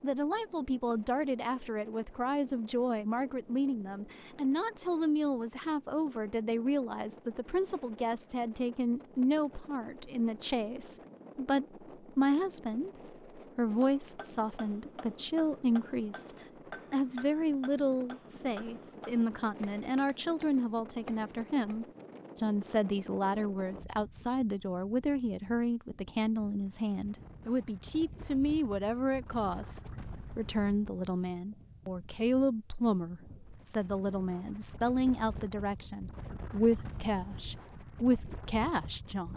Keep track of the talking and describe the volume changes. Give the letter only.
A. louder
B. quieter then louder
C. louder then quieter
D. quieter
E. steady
E.